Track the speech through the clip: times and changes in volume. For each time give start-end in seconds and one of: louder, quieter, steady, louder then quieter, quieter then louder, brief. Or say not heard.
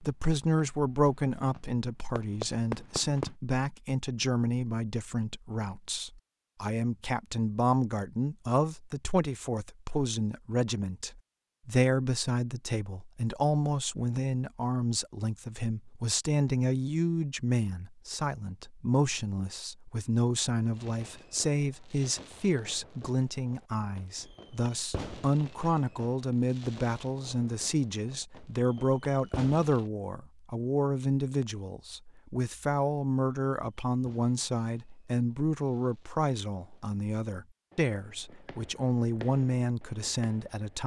0.0-40.8 steady.